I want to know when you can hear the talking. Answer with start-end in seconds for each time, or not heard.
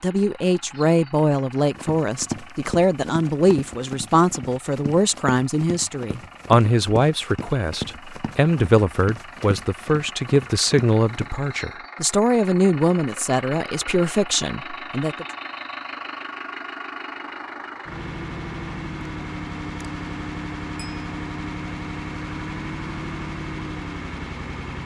0.0-15.2.